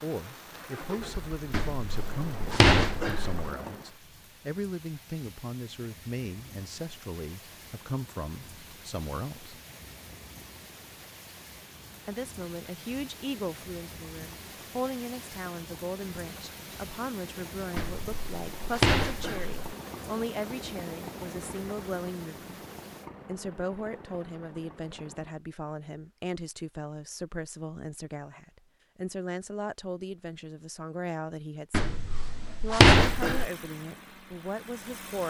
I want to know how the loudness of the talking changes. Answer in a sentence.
The volume of the talking stays about the same.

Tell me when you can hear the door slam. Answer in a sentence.
The door slam can be heard from 1.5 to 3.5 s, from 17.8 to 19.6 s and from 31.7 to 33.5 s.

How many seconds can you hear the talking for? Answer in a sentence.
You can hear the talking for 32 seconds altogether.